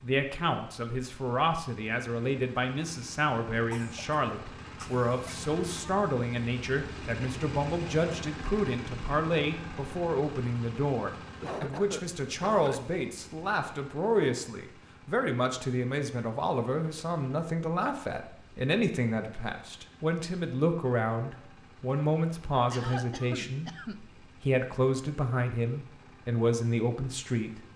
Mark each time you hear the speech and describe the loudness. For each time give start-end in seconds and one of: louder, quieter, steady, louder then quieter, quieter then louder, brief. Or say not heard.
0.0-27.6 steady.